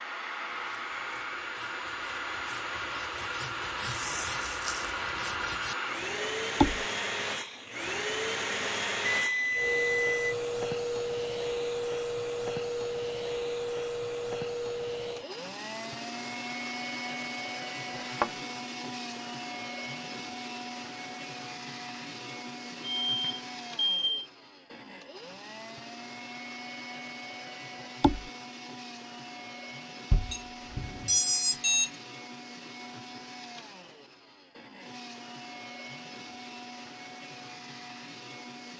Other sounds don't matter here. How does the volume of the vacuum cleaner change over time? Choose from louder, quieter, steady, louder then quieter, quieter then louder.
quieter.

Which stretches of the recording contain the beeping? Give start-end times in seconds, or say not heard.
9.1-10.3, 23.1-24.2, 30.1-31.9.